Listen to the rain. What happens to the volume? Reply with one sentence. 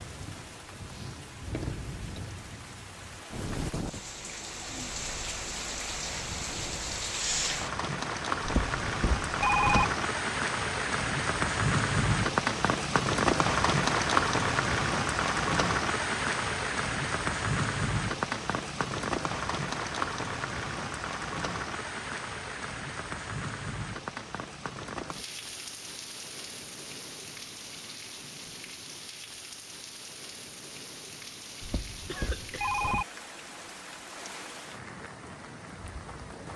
The volume of the rain goes up, then down.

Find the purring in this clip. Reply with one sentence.
You can't hear the purring here.